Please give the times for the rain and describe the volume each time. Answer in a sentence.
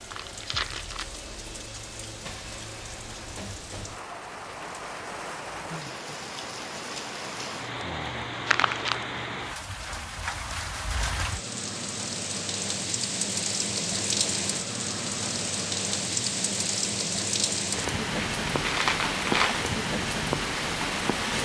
You can hear the rain from 0.0 to 21.3 s, getting louder.